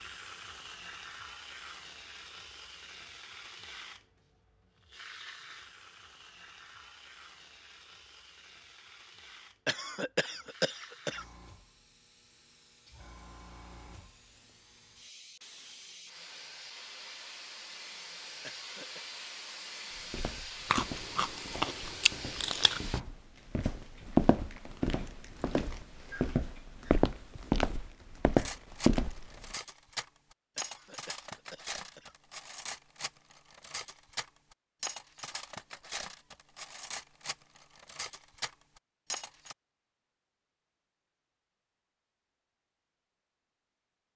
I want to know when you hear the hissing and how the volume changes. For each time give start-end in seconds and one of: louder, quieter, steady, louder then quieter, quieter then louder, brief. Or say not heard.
0.0-23.0 quieter then louder.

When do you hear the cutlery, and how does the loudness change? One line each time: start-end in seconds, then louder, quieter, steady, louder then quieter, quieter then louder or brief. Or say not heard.
28.4-39.5 steady.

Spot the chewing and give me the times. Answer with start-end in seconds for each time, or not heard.
20.7-22.8.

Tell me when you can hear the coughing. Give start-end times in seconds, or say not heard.
9.7-11.2, 18.4-19.0, 30.6-32.1.